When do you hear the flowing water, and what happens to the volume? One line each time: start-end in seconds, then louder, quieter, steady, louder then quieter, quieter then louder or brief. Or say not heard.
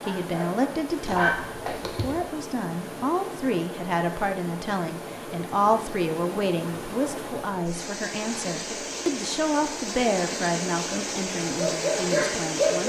0.0-12.8 louder.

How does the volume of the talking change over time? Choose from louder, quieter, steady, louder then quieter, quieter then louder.
steady.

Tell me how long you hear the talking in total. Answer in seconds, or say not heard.
13 s.